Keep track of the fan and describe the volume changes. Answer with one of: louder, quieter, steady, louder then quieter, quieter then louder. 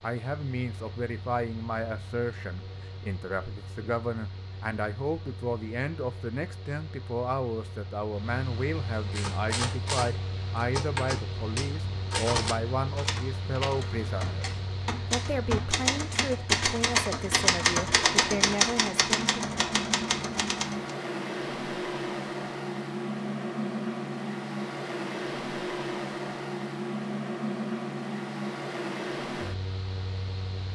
louder.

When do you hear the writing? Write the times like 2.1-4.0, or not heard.
not heard.